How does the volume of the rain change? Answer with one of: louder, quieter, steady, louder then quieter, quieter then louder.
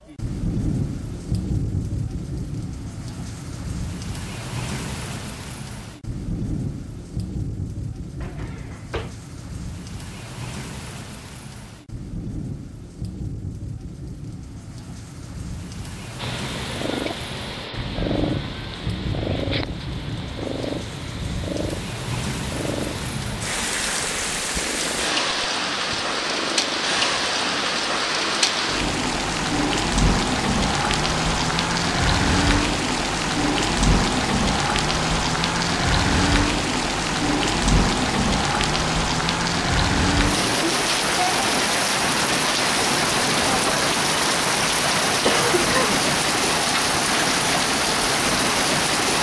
louder.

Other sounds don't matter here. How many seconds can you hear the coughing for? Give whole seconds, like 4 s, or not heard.
2 s.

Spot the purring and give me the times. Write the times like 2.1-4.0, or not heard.
16.1-27.7.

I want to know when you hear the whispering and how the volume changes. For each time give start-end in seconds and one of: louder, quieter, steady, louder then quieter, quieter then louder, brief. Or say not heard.
not heard.